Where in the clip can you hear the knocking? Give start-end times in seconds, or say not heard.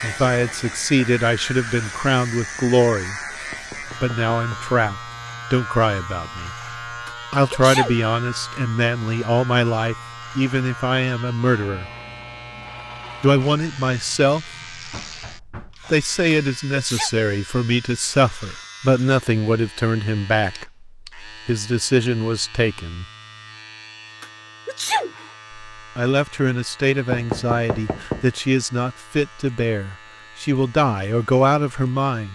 3.5-4.7, 14.9-15.9, 27.1-28.2.